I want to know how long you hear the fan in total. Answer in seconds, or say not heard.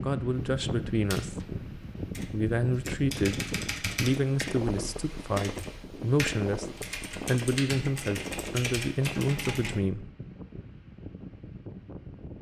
12 s.